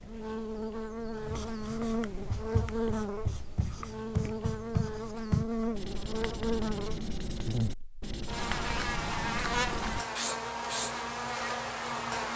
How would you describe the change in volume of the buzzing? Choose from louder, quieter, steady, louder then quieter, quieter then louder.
steady.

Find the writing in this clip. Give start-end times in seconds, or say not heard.
1.1-10.9.